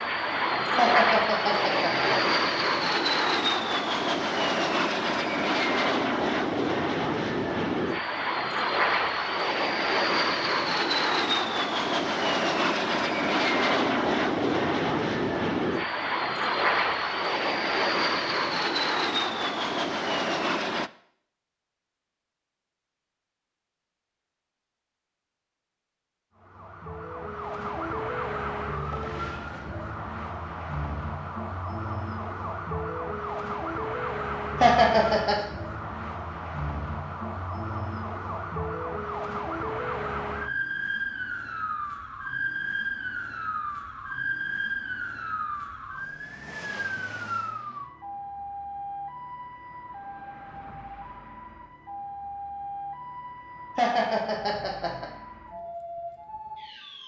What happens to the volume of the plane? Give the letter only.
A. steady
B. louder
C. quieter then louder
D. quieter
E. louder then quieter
A.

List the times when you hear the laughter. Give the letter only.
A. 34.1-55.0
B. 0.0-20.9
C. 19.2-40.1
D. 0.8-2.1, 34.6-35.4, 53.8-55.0
D.